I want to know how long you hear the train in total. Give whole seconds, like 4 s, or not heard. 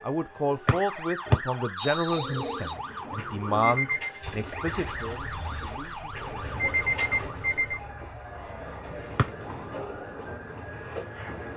5 s.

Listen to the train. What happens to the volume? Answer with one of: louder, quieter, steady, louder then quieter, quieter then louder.
quieter then louder.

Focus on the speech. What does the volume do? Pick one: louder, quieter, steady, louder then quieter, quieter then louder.
quieter.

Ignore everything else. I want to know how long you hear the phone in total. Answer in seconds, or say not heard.
3 s.